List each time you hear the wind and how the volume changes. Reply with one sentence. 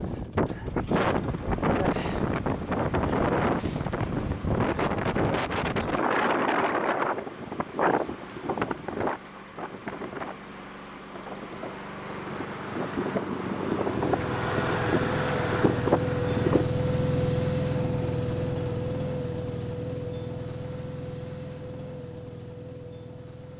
The wind can be heard from 0.0 to 16.6 s, getting quieter then louder.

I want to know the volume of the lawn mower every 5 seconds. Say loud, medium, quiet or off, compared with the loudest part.
quiet, quiet, medium, loud, medium.